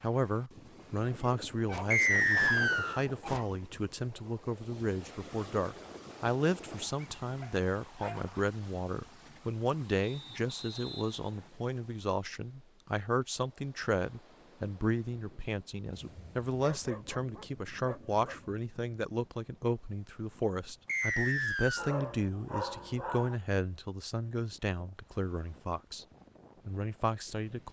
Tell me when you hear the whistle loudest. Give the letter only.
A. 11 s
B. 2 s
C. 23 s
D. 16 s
B.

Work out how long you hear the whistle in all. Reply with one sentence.
You can hear the whistle for 4 seconds altogether.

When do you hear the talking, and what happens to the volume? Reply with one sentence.
The talking can be heard from 0.0 to 26.1 s, at a steady volume; and briefly from 26.6 to 27.6 s.